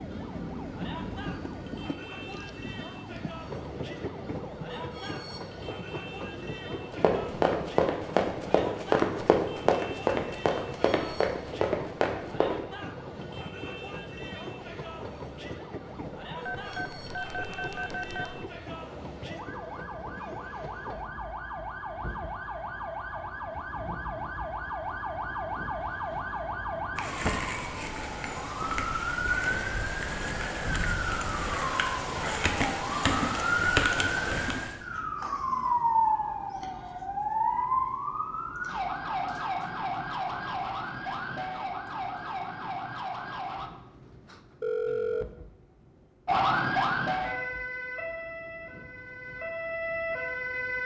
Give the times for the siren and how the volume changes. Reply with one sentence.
You can hear the siren from 0.0 to 43.7 s, getting louder; and from 46.2 to 50.8 s, getting quieter then louder.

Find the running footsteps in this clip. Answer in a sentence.
The running footsteps can be heard from 6.8 to 12.6 s.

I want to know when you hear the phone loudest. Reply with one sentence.
The loudest moment of the phone is at 45 seconds.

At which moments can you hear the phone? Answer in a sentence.
You can hear the phone from 16.4 to 18.4 s and from 44.6 to 45.3 s.